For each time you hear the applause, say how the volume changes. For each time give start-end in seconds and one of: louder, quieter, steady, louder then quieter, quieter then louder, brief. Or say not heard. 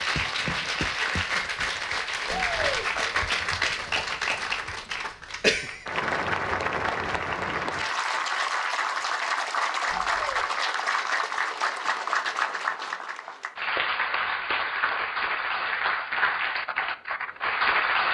0.0-18.0 steady.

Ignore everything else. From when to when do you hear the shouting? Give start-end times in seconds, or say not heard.
2.2-2.9, 9.8-10.4.